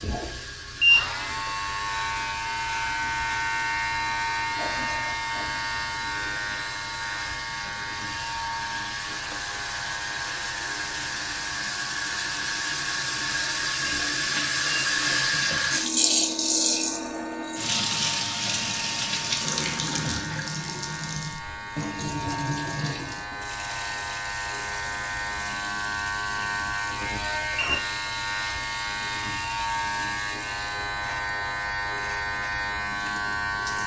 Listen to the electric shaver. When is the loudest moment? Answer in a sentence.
The volume of the electric shaver peaks at 1 second.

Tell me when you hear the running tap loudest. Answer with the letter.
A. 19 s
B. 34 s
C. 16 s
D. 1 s
C.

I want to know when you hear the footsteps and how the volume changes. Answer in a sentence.
You can't hear the footsteps here.